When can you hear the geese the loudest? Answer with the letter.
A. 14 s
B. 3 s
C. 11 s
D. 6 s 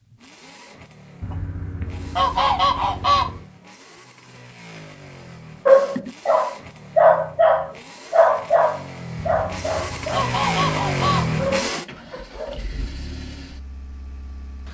B.